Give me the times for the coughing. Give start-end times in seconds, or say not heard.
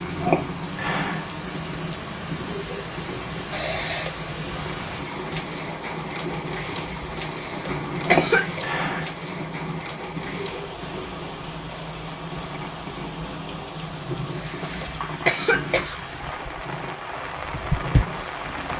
3.5-4.1, 7.5-8.6, 14.3-16.0.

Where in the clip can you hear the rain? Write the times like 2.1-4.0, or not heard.
0.0-18.7.